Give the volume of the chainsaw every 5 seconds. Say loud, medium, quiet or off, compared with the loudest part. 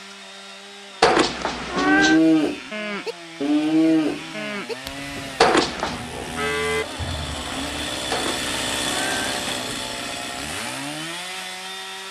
medium, loud, loud.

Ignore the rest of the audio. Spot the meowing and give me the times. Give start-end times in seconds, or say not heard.
1.0-2.2, 5.4-6.0, 8.1-9.6.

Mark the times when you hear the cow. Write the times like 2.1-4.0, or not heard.
1.8-8.0.